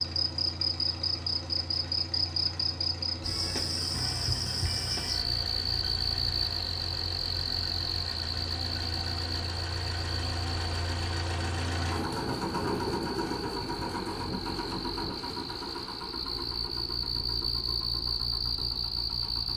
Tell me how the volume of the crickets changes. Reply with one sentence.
The volume of the crickets goes down, then up.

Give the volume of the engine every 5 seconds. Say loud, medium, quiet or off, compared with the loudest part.
medium, medium, loud, medium.